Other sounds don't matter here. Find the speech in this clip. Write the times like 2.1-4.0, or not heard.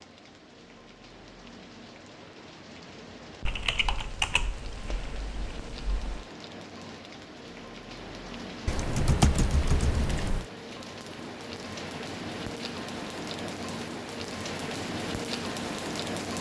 not heard.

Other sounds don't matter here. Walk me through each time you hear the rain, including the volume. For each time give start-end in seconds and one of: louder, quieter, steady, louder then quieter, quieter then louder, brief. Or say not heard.
0.0-16.3 louder.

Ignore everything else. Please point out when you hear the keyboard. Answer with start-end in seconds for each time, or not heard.
3.5-6.2, 8.7-10.4.